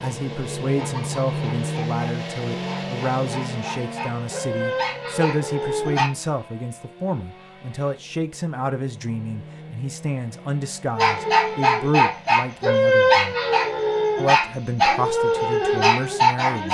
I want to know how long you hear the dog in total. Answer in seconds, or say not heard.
12 s.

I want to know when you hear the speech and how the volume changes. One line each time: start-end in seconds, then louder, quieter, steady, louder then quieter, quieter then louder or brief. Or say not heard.
0.0-13.3 steady
14.2-16.6 brief.